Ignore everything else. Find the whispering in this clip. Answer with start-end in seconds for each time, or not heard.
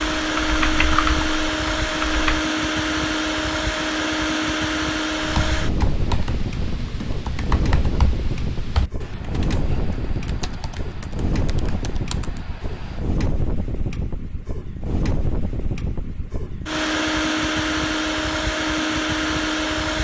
not heard.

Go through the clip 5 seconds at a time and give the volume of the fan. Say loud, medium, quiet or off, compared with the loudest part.
loud, medium, medium, loud.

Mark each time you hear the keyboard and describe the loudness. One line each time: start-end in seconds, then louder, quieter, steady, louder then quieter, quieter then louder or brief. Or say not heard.
0.1-2.4 brief
5.2-13.0 quieter.